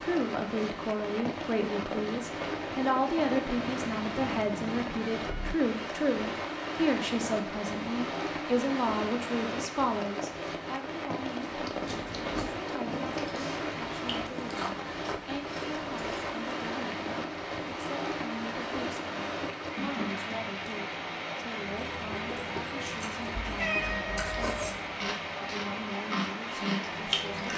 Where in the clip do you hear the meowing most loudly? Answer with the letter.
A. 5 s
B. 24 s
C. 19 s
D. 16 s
B.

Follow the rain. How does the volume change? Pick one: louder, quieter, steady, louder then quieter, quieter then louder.
steady.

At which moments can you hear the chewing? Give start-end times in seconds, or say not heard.
11.4-16.6, 21.8-27.5.